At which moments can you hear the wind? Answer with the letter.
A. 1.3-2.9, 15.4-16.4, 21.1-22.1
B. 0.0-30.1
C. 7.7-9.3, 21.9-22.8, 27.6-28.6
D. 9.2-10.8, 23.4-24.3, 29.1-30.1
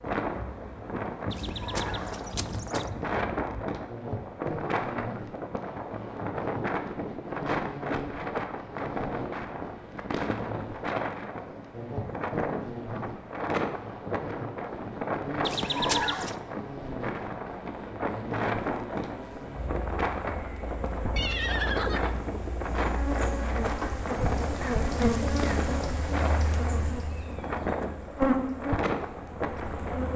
B.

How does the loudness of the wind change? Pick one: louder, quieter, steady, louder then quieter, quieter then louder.
steady.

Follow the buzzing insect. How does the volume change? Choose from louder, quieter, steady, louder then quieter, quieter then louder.
louder.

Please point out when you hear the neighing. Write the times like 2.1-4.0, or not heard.
1.3-2.9, 15.4-16.4, 21.1-22.1.